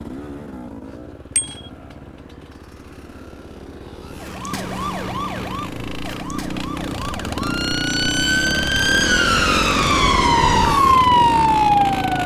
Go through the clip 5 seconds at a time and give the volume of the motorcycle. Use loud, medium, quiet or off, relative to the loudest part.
quiet, loud, loud.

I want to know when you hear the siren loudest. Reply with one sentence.
The volume of the siren peaks at 11 seconds.